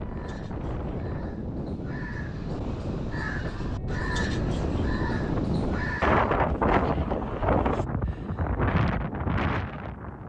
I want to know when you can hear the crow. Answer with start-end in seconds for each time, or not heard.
0.1-6.3.